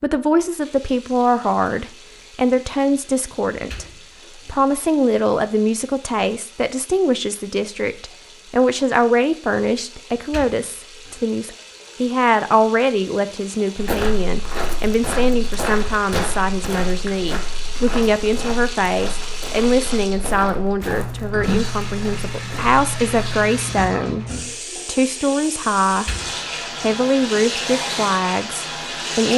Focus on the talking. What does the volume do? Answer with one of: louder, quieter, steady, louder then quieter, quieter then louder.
steady.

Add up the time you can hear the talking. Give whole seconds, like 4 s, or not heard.
29 s.